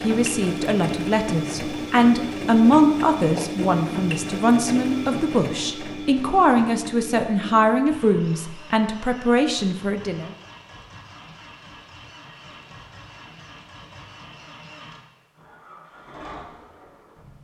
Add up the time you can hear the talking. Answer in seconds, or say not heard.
10 s.